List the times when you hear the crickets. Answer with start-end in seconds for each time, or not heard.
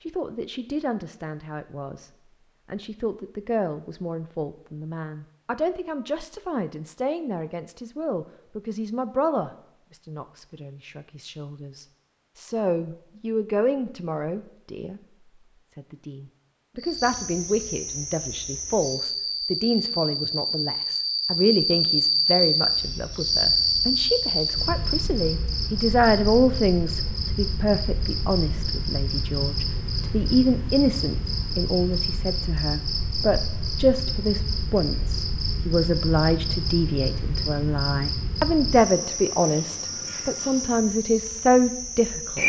16.8-42.4.